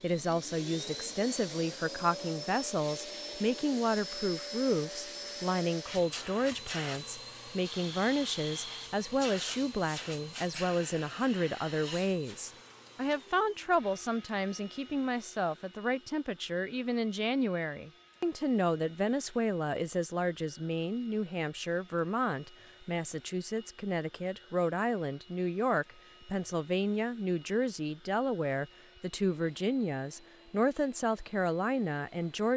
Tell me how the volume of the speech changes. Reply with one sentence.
The loudness of the speech stays about the same.